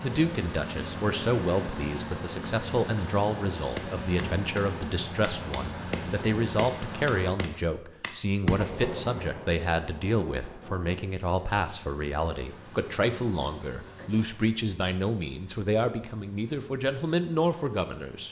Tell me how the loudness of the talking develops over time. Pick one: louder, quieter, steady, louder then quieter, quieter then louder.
steady.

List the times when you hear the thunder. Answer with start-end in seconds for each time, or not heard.
8.6-11.1.